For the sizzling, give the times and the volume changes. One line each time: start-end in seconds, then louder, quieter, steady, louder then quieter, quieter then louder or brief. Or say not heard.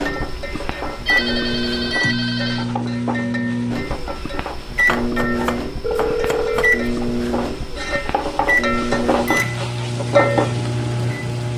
0.0-11.5 louder.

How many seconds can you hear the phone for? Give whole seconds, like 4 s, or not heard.
3 s.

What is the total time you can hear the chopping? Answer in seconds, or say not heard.
2 s.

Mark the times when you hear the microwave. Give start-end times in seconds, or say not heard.
0.0-11.5.